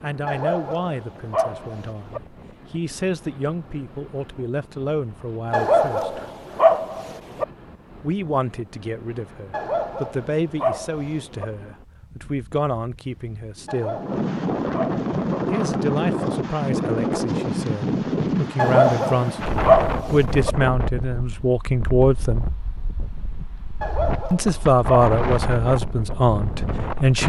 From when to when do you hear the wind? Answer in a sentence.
You can hear the wind from 0.0 to 27.2 s.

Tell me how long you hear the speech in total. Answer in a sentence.
You can hear the speech for 22 seconds altogether.